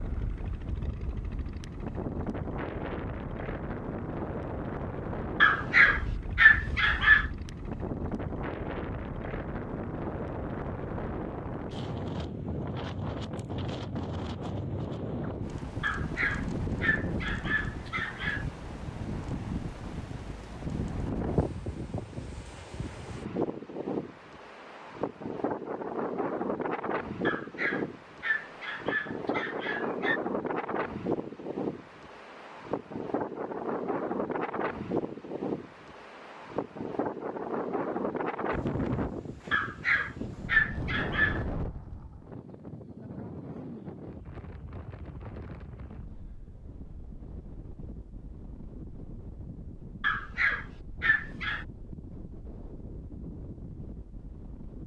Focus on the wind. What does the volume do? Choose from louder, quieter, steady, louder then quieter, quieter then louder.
quieter.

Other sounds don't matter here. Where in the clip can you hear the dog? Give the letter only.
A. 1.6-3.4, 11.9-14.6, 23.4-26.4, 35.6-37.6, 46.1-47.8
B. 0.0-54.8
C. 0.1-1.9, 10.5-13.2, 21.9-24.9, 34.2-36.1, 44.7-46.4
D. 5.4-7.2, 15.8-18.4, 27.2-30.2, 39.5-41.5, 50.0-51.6
D.